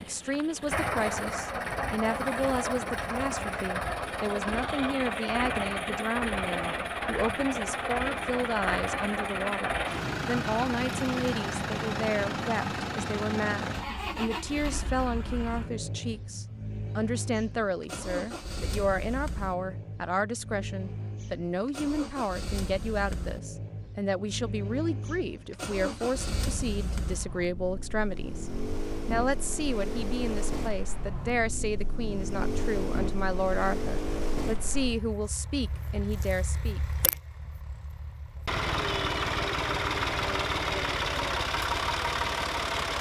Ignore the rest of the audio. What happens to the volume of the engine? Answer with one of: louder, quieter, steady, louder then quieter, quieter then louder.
quieter then louder.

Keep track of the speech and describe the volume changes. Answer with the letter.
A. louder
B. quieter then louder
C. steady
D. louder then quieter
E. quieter
C.